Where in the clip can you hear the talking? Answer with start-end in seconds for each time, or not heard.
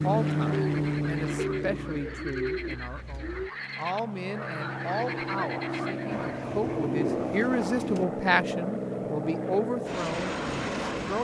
0.0-11.1.